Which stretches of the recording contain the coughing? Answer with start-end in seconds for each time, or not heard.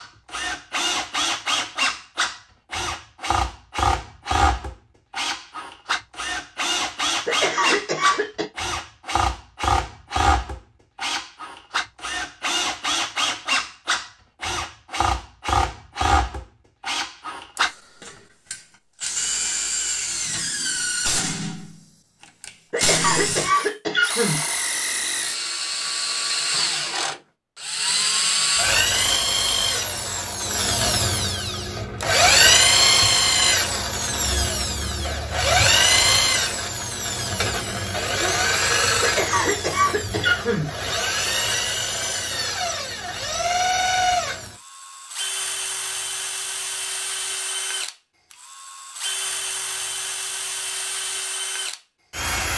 7.2-8.4, 22.7-24.4, 39.0-40.7.